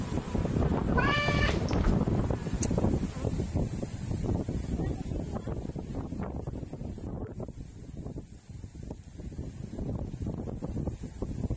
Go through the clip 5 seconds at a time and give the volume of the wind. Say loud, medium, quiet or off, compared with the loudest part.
loud, medium, medium.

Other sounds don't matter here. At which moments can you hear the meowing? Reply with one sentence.
The meowing can be heard from 0.9 to 2.0 s.